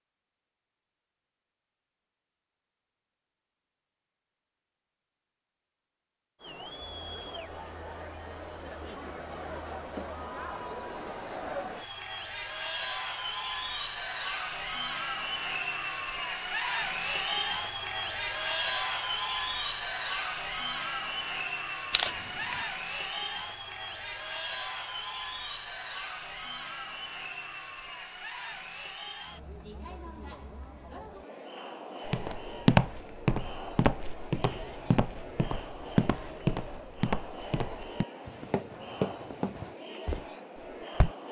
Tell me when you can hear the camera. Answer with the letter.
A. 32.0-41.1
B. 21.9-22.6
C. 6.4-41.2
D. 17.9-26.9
B.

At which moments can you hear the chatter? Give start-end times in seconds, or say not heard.
6.4-41.2.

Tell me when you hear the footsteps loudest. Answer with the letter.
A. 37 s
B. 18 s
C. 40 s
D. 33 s
D.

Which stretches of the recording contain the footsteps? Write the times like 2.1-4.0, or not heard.
32.0-41.1.